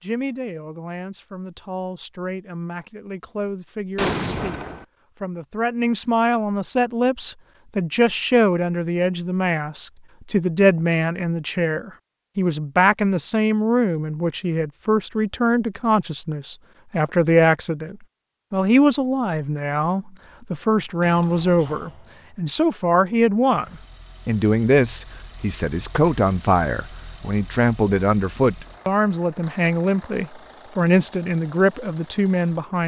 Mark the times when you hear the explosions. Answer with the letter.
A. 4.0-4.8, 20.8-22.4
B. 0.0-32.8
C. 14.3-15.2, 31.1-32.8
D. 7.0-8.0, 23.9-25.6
A.